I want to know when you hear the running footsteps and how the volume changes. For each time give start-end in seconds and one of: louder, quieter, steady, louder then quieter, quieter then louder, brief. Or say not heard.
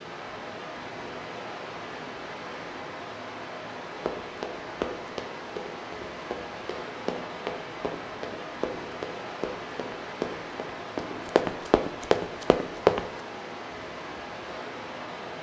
4.0-13.1 louder.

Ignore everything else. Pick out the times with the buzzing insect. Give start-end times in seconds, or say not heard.
not heard.